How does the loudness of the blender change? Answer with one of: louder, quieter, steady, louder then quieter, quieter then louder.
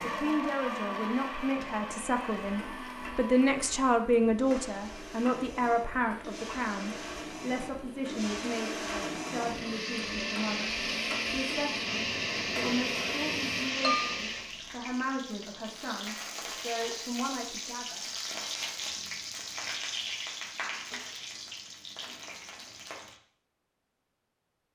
quieter then louder.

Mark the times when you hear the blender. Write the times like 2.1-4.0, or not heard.
0.0-14.6.